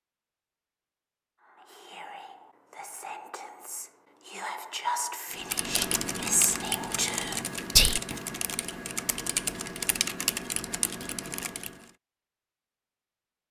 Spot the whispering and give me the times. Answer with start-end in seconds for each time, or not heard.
1.4-8.2.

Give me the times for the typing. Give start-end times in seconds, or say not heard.
5.3-11.9.